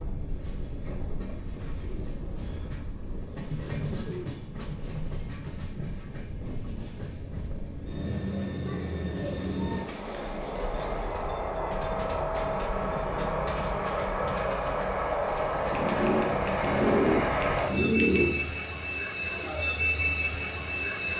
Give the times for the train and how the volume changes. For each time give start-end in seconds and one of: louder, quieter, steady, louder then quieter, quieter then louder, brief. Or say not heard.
0.0-21.1 louder.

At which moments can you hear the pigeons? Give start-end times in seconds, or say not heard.
1.8-4.5, 15.7-18.4.